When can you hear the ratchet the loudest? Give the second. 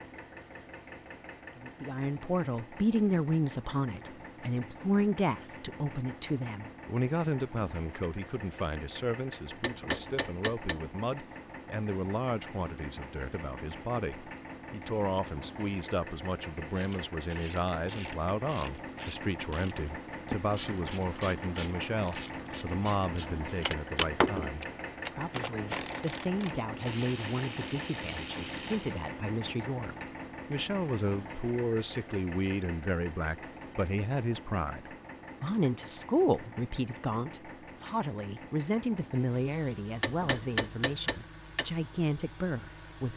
24 s.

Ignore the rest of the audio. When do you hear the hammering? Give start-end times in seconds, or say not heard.
9.6-10.8, 40.0-41.6.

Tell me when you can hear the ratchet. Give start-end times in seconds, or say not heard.
16.8-29.0.